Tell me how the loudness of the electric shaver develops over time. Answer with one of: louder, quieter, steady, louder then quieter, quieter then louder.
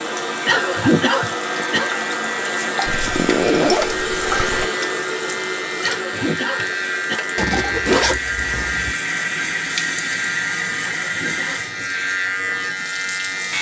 steady.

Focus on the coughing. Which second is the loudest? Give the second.
1 s.